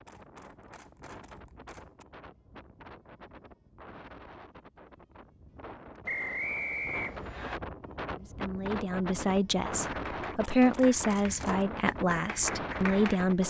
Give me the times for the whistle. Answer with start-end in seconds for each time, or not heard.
6.0-7.6.